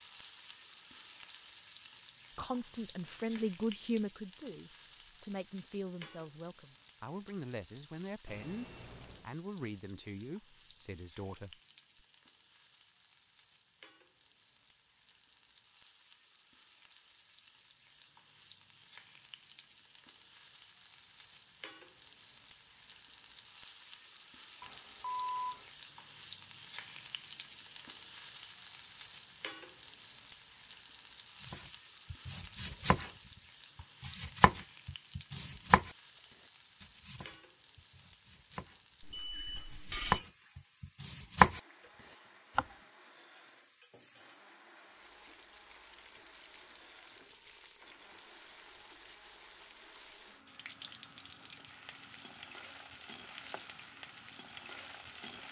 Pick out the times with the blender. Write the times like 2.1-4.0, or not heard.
41.5-55.4.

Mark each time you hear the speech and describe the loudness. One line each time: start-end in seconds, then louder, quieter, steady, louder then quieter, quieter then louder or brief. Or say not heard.
2.4-11.6 quieter.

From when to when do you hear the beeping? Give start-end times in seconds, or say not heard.
8.2-9.3, 24.6-25.7, 39.0-40.2.